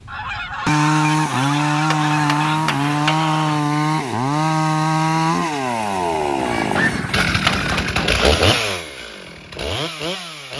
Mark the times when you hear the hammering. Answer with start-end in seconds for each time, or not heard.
1.9-3.6, 6.8-8.6.